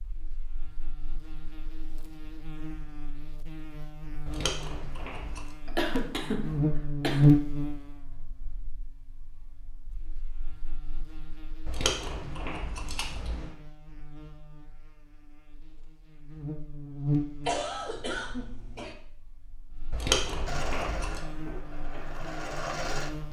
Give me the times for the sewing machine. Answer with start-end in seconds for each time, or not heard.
20.4-23.2.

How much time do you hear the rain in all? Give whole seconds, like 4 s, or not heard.
not heard.